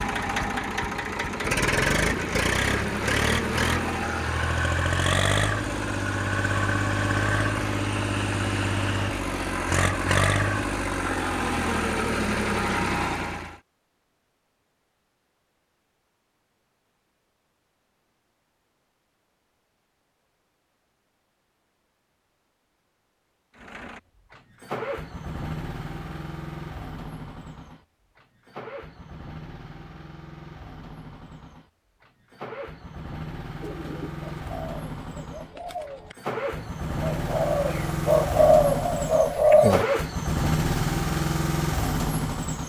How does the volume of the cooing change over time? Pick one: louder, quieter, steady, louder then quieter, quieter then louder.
louder.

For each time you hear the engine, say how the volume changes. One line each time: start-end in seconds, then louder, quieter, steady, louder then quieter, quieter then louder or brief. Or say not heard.
0.0-13.6 steady
23.6-42.6 quieter then louder.